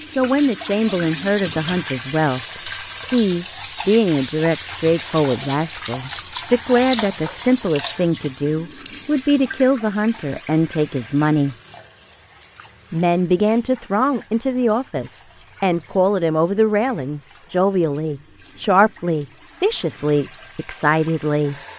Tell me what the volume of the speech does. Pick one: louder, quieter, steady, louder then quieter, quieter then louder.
steady.